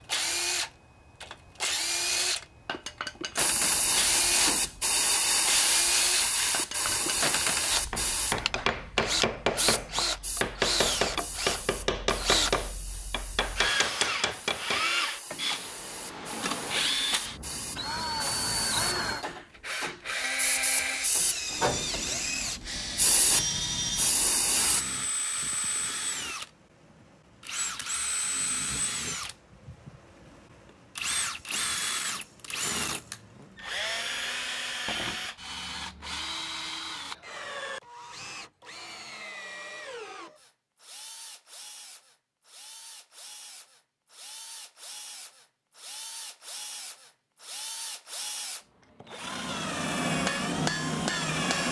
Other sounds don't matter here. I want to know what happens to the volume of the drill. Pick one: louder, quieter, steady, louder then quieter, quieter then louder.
quieter.